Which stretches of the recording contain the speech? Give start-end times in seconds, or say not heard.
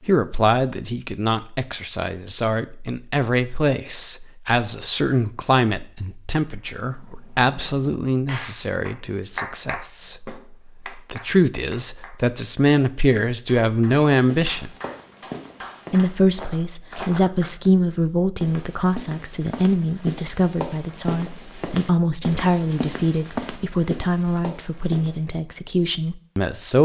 0.1-14.8, 15.9-26.7.